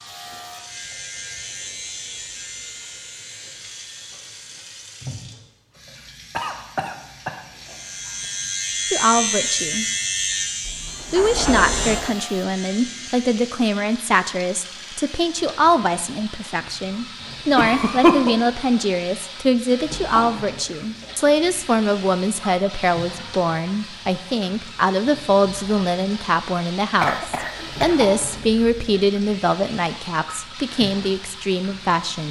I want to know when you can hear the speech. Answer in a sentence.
The speech can be heard from 8.9 to 9.8 s and from 11.1 to 32.2 s.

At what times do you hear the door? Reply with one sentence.
You can hear the door from 10.6 to 12.2 s.